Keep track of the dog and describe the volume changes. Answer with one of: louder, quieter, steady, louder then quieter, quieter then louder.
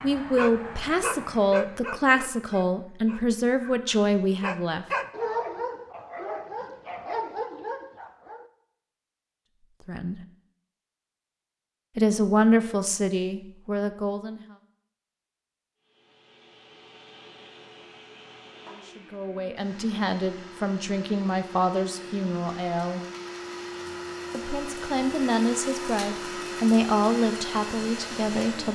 quieter then louder.